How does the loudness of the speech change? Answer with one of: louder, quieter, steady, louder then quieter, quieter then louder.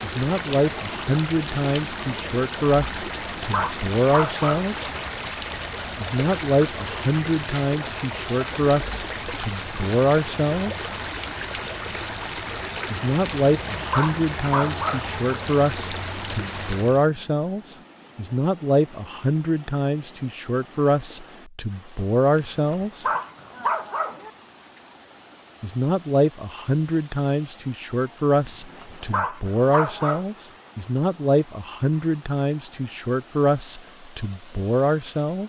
steady.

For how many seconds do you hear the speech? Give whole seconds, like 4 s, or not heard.
30 s.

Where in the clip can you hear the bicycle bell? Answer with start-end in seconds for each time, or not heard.
not heard.